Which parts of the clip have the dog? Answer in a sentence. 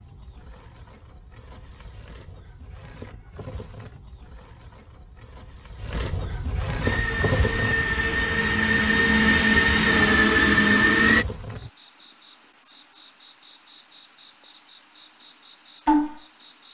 You can't hear the dog here.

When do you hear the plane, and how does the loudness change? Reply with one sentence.
The plane can be heard from 6.8 to 11.2 s, getting louder.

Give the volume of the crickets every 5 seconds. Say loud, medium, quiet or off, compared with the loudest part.
quiet, loud, quiet, loud.